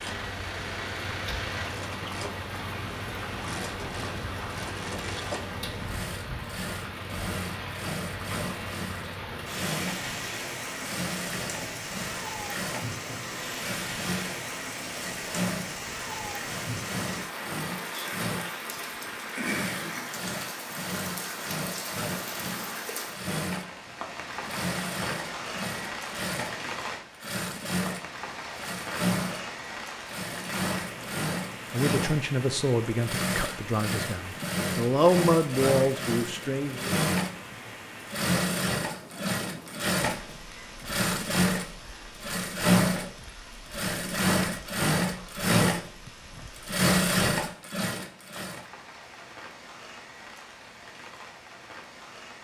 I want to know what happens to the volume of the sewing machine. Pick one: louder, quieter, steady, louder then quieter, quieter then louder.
louder.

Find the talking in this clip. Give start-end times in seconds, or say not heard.
31.7-36.9.